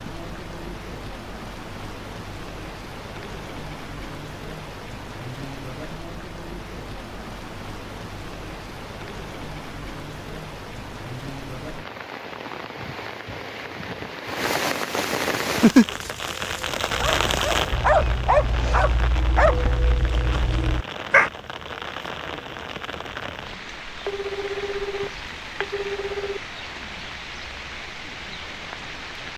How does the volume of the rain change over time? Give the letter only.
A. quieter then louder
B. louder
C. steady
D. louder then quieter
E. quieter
D.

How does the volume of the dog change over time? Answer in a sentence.
The volume of the dog goes up, then down.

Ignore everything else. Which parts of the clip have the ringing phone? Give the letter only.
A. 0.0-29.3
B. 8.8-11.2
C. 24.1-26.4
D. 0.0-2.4
C.